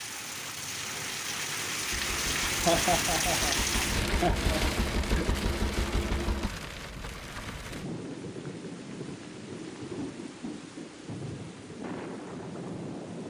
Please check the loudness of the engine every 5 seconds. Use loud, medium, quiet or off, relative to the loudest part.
loud, loud, off.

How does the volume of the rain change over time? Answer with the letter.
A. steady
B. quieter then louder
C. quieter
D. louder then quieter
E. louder
C.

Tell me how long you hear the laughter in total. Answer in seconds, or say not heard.
3 s.